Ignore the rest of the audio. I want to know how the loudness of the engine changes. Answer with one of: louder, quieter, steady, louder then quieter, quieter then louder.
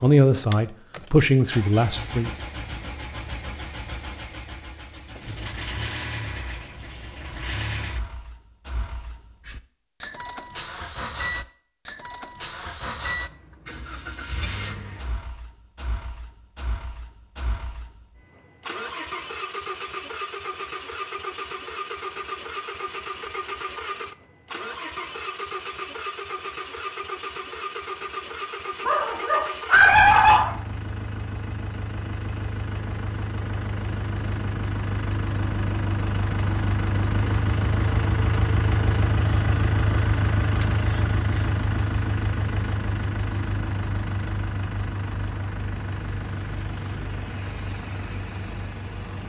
louder.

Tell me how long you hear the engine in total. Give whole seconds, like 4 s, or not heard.
49 s.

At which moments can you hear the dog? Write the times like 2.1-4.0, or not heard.
28.9-30.6.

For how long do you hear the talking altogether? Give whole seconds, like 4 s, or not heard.
2 s.